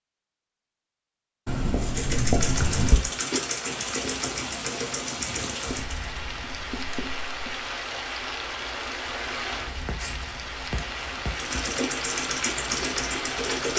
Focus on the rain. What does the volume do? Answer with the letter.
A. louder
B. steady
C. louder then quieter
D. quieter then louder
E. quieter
B.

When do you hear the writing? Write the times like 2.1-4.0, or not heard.
1.4-3.0, 5.7-7.7, 9.7-11.8.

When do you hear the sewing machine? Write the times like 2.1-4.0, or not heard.
1.8-6.2, 11.3-13.7.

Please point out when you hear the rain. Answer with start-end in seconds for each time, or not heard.
2.5-13.7.